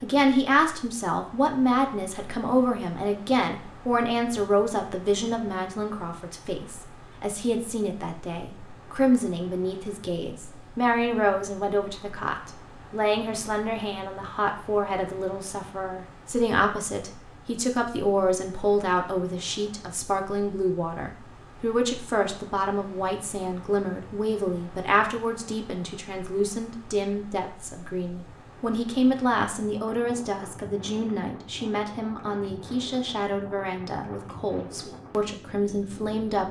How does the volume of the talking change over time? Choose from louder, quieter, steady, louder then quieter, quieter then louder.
steady.